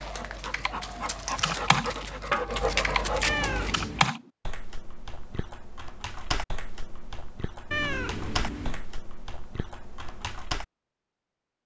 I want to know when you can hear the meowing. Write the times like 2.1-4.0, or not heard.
3.2-4.1, 7.7-8.8.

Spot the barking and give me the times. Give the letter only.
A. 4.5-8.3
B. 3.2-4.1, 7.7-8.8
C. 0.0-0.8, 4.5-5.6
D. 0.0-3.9
D.